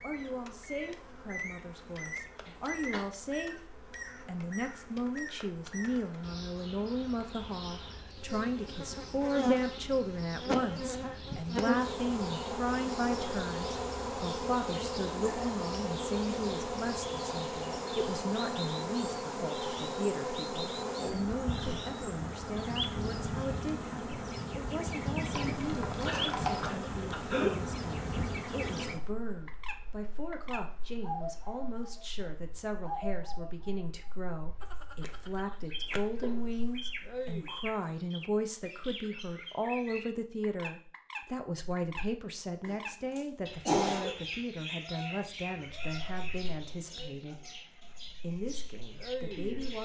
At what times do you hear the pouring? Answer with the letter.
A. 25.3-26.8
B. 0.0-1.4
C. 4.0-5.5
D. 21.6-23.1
A.